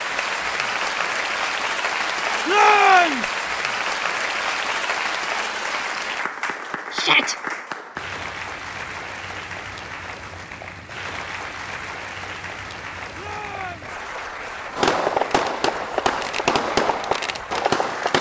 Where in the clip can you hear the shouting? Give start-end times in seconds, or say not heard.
2.5-3.3, 6.9-7.3, 13.2-14.0.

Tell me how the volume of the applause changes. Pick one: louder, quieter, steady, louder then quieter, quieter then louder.
quieter.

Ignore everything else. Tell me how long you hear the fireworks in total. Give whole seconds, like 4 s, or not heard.
3 s.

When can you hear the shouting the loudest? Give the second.
3 s.